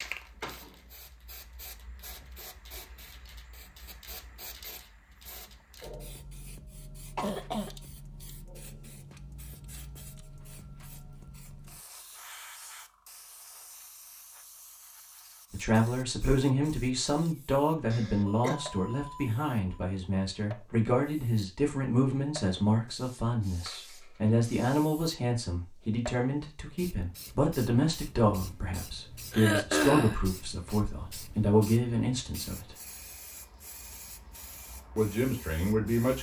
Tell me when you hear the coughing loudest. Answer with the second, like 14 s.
30 s.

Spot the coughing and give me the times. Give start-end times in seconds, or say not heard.
7.2-7.8, 17.9-18.6, 29.3-30.2.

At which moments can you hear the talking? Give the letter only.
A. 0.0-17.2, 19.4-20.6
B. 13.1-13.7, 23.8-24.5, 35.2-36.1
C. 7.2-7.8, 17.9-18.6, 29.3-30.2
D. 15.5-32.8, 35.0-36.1
D.